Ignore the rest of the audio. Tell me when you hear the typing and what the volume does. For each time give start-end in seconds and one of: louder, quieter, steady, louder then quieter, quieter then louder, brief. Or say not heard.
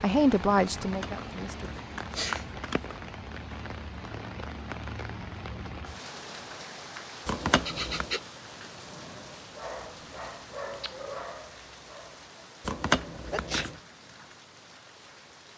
not heard.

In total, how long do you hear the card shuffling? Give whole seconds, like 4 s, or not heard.
4 s.